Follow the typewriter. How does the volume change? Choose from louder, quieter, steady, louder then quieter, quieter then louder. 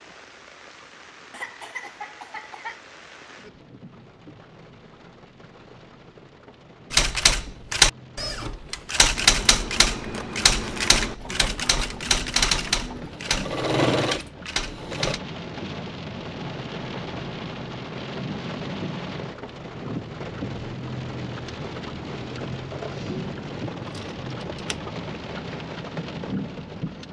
quieter.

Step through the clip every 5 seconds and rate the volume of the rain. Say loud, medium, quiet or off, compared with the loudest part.
quiet, quiet, medium, loud, loud, loud.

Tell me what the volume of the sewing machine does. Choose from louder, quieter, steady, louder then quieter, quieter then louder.
louder then quieter.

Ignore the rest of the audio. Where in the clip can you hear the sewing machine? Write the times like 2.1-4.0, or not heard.
11.0-15.2.